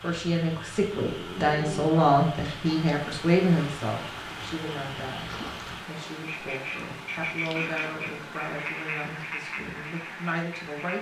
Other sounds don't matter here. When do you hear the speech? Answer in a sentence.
You can hear the speech from 0.0 to 10.9 s.